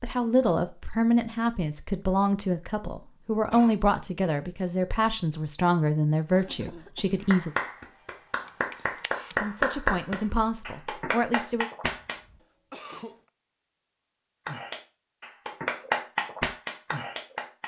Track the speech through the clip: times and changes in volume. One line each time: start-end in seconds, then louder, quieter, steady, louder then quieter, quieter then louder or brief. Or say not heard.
0.0-7.5 steady
9.3-11.7 brief.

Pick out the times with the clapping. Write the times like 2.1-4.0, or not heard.
7.2-12.2, 14.4-17.6.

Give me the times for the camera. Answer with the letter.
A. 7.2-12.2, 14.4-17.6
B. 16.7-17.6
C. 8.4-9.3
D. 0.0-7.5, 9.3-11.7
C.